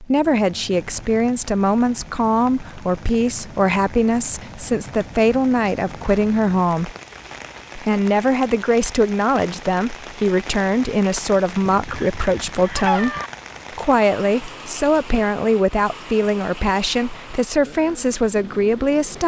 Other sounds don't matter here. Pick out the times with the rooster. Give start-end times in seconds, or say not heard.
11.7-13.3.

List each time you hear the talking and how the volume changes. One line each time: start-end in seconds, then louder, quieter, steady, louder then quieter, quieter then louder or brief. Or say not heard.
0.0-6.9 steady
7.8-13.2 steady
13.8-19.2 steady.